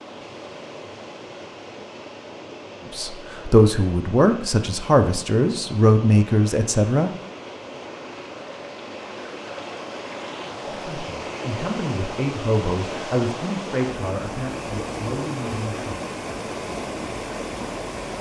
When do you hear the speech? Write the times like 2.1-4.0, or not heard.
2.9-7.1, 10.7-16.1.